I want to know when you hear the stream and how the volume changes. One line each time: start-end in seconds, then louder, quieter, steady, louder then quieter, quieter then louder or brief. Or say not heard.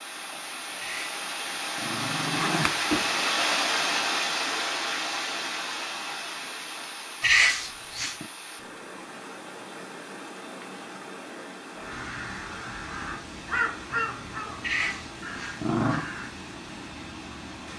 0.0-17.7 quieter.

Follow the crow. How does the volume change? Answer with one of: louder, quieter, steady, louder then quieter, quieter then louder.
louder then quieter.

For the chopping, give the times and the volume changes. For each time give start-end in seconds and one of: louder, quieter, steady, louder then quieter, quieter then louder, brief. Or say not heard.
not heard.